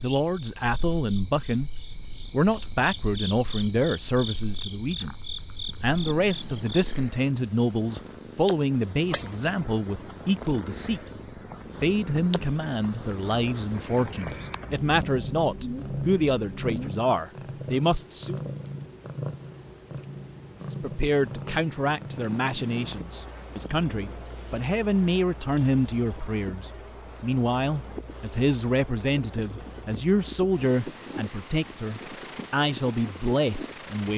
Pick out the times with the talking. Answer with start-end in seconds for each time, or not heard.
0.0-1.7, 2.3-5.2, 5.8-11.0, 11.8-18.4, 20.7-34.1.